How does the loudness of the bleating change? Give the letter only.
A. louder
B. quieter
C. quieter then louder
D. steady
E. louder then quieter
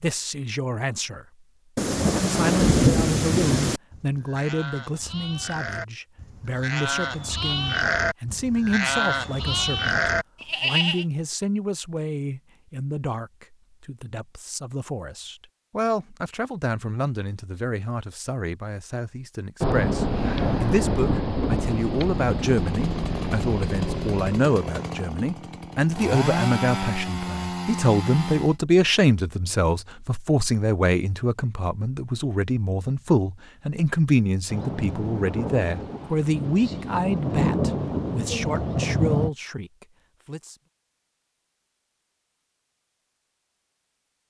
A.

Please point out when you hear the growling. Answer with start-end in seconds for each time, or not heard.
not heard.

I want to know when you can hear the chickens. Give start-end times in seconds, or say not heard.
not heard.